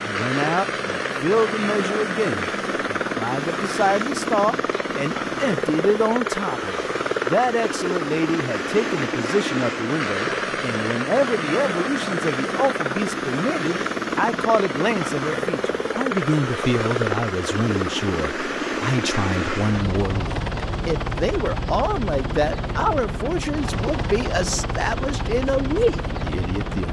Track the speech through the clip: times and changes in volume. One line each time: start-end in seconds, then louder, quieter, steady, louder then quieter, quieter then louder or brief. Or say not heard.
0.0-26.8 steady.